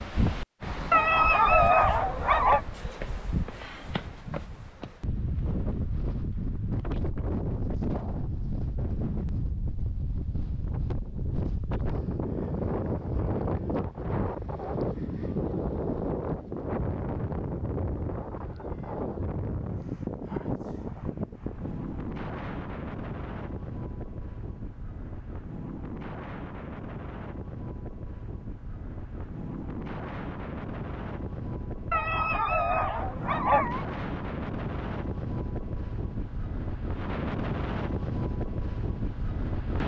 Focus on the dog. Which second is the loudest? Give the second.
2 s.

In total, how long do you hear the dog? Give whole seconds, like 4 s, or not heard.
4 s.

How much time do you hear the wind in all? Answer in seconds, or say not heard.
40 s.